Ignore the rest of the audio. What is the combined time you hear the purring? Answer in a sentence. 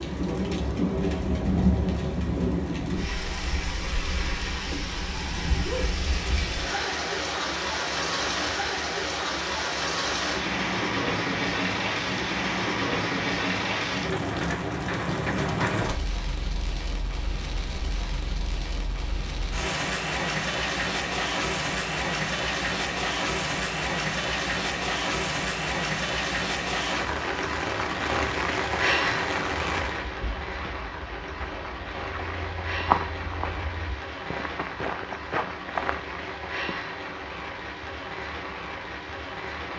You can't hear the purring here.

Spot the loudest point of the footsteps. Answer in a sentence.
The volume of the footsteps peaks at 33 seconds.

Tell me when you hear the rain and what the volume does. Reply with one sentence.
The rain can be heard from 0.0 to 39.7 s, getting quieter.